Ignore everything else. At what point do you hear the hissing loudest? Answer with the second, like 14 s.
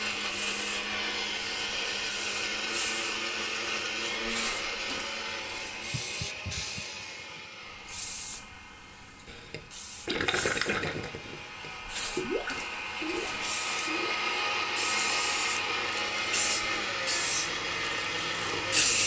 19 s.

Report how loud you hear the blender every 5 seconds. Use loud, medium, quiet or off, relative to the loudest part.
loud, medium, loud, loud.